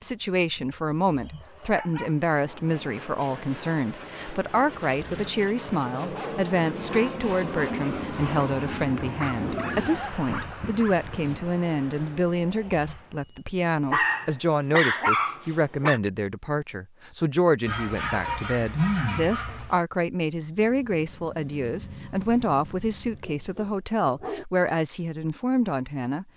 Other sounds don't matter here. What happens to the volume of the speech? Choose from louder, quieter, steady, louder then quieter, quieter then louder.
steady.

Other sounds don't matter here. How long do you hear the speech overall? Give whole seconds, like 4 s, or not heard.
26 s.